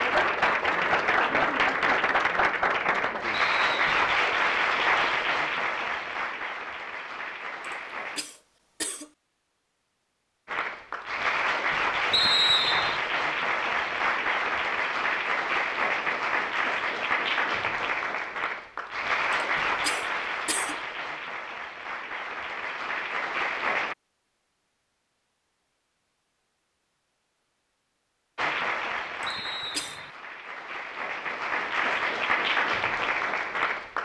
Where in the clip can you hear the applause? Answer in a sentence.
You can hear the applause from 0.0 to 8.2 s, from 10.4 to 23.9 s and from 28.4 to 34.0 s.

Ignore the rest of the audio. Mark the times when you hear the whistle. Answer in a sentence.
The whistle can be heard from 3.3 to 4.0 s, from 12.1 to 13.0 s and from 29.2 to 30.1 s.